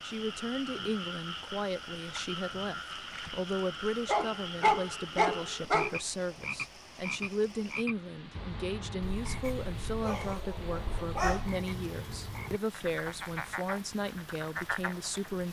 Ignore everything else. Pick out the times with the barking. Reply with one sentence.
You can hear the barking from 4.0 to 6.0 s and from 9.2 to 11.6 s.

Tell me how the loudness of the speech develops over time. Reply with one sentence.
The volume of the speech stays about the same.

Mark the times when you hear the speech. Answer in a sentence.
You can hear the speech from 0.0 to 15.4 s.